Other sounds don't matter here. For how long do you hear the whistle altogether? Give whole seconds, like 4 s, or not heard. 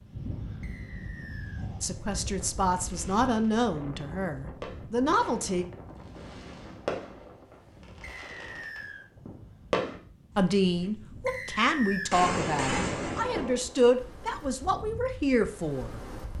3 s.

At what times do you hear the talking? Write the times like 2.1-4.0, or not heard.
1.8-5.7, 10.3-16.0.